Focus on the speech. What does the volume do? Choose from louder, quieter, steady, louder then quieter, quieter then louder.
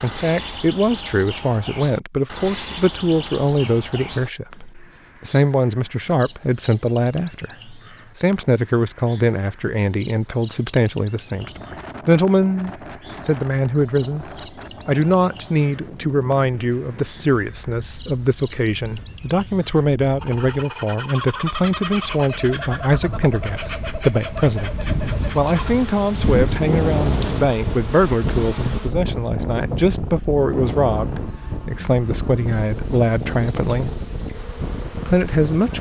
steady.